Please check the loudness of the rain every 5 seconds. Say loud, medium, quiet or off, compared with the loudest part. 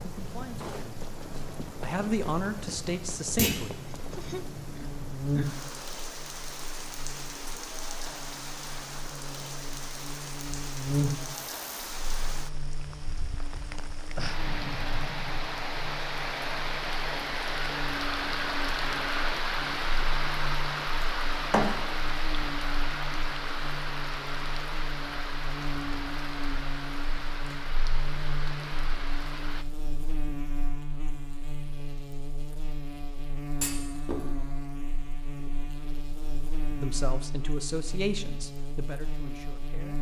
medium, medium, medium, loud, loud, medium, off, off.